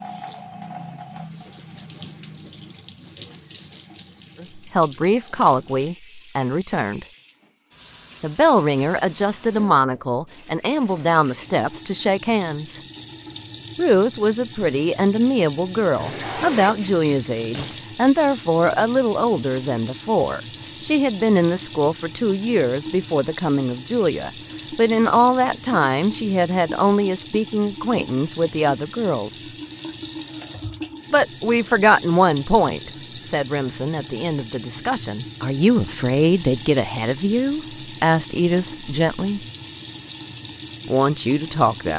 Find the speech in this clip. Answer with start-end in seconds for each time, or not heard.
4.4-7.0, 8.2-12.8, 13.8-29.4, 31.1-39.4, 40.9-41.9.